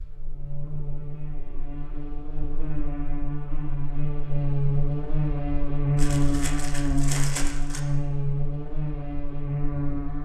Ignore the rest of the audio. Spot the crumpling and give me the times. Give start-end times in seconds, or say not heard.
6.0-7.8.